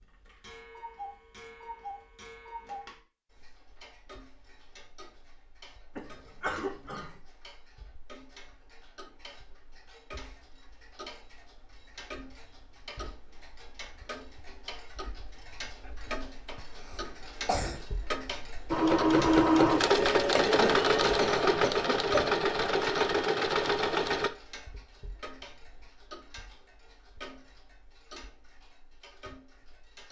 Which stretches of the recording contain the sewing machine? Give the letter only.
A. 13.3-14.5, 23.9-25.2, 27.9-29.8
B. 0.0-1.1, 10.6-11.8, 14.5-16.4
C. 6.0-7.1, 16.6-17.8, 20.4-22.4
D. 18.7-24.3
D.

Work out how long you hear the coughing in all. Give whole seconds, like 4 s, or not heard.
4 s.